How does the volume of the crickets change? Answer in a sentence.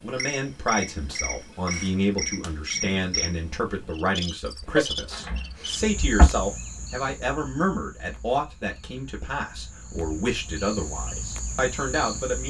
The volume of the crickets goes down, then up.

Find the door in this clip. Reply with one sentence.
You can hear the door from 4.7 to 6.3 s.